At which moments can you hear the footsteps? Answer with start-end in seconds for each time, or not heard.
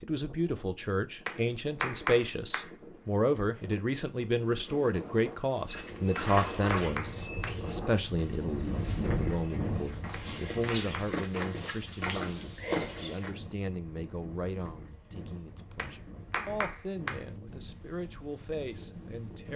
5.7-13.3.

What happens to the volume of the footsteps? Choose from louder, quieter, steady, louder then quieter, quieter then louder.
quieter then louder.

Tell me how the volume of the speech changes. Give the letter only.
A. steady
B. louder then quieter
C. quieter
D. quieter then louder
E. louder
C.